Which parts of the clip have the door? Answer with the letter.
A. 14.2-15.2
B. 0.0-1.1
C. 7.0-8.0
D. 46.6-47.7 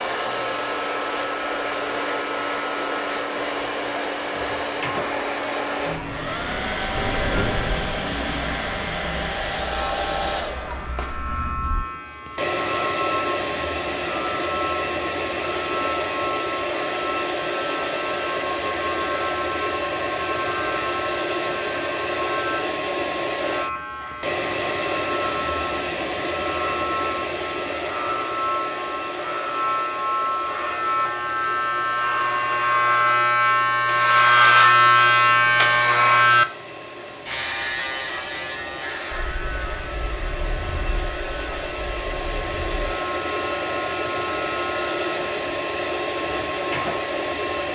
C.